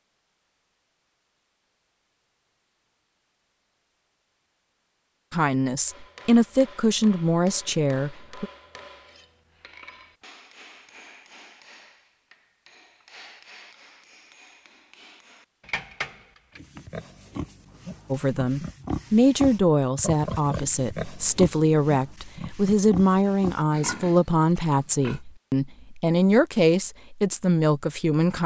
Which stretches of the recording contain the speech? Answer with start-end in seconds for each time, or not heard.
5.3-8.4, 18.1-28.4.